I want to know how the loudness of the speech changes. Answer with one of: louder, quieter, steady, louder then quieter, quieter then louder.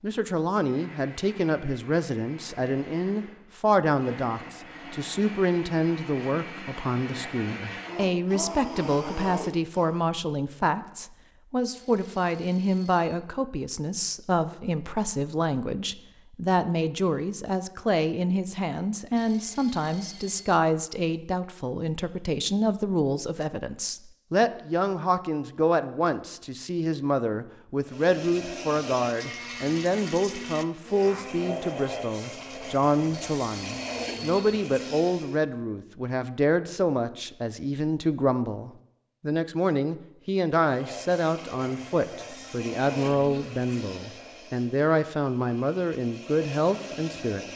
steady.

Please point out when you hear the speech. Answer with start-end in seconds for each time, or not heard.
0.0-47.5.